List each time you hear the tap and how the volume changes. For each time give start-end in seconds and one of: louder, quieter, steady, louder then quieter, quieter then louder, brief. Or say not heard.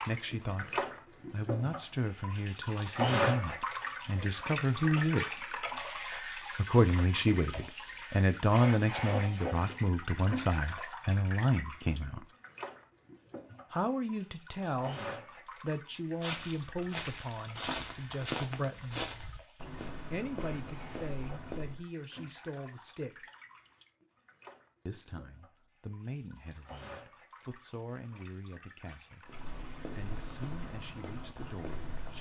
0.0-31.9 quieter.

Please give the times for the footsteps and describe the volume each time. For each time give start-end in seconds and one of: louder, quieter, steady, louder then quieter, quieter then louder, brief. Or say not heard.
16.2-21.9 louder then quieter
29.2-32.1 brief.